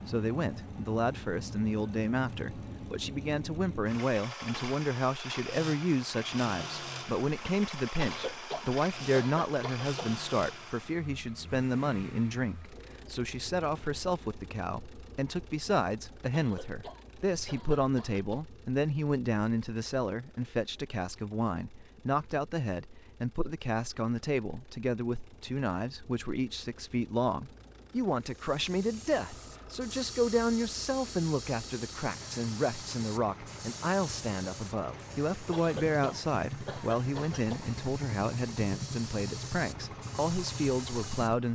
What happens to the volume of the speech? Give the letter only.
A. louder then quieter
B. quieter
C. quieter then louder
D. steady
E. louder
D.